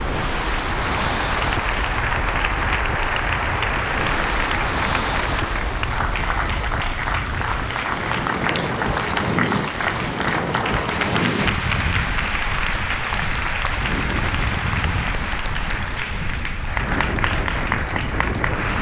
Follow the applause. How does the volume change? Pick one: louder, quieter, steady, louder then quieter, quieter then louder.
steady.